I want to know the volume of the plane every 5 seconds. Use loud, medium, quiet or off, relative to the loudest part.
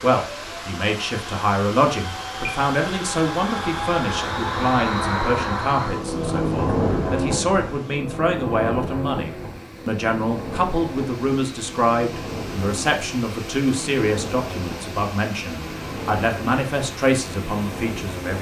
loud, loud, medium, medium.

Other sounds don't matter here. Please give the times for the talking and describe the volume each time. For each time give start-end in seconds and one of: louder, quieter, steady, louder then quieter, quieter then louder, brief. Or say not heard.
0.0-18.3 steady.